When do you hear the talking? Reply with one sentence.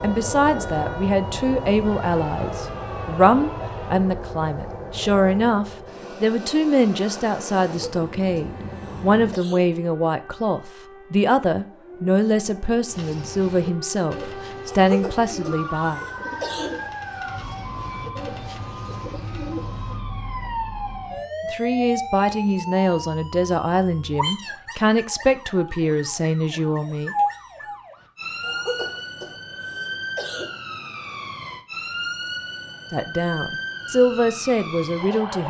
You can hear the talking from 0.0 to 16.0 s, from 21.4 to 27.1 s and from 32.9 to 35.4 s.